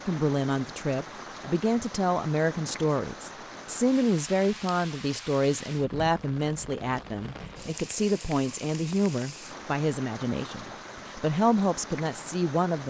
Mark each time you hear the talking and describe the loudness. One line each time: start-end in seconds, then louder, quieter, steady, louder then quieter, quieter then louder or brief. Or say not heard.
0.1-12.8 steady.